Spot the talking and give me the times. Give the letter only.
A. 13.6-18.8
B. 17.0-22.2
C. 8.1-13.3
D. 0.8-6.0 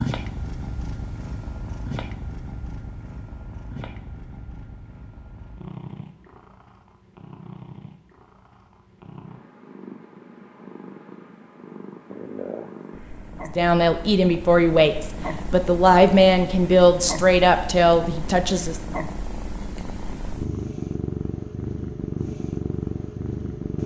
A.